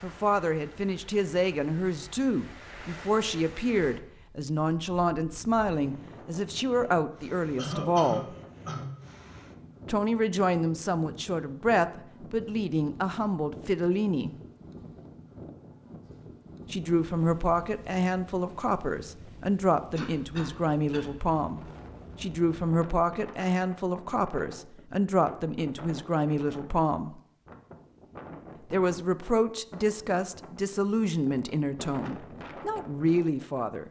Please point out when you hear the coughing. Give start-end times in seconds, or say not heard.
7.5-8.9, 19.9-21.1.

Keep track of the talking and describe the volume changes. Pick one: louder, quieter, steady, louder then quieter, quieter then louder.
steady.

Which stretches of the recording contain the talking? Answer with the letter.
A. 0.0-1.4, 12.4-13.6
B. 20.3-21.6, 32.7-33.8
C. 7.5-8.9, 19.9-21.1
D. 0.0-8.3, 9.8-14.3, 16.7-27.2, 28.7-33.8
D.